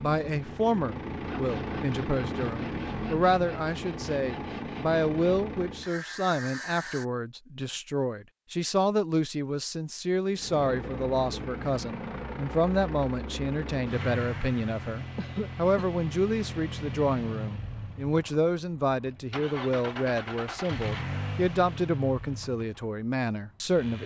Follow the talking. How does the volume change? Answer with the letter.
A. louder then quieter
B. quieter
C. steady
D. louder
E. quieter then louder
C.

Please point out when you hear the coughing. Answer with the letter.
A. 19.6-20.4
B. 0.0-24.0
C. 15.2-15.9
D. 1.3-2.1
C.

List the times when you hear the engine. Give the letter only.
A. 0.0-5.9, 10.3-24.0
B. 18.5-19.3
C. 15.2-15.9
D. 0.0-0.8
A.